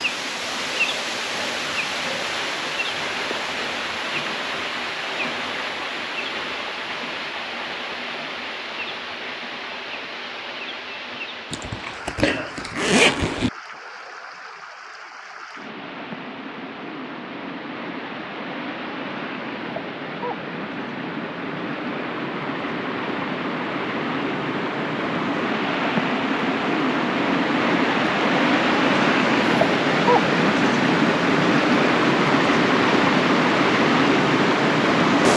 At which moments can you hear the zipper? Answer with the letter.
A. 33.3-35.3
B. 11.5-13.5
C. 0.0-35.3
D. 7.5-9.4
B.